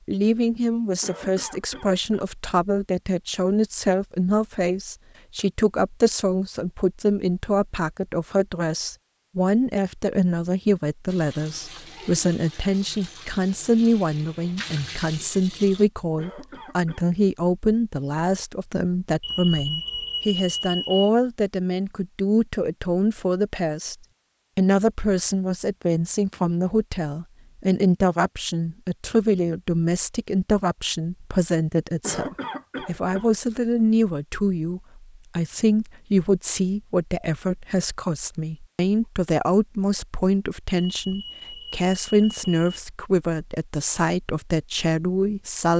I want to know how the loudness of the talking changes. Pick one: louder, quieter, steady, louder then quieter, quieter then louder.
steady.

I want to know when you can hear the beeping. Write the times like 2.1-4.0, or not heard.
19.2-21.1, 40.8-42.8.